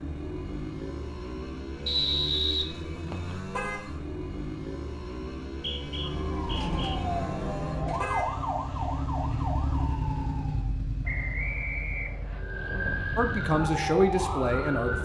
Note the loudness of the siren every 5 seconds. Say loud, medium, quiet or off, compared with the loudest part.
off, loud, loud.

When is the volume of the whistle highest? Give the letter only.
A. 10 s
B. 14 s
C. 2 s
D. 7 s
C.